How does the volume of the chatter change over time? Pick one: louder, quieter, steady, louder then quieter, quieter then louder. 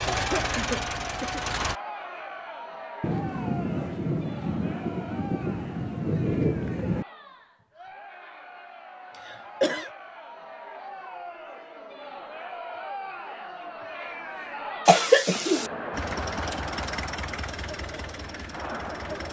quieter then louder.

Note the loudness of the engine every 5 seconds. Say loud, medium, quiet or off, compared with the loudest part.
loud, off, off, medium.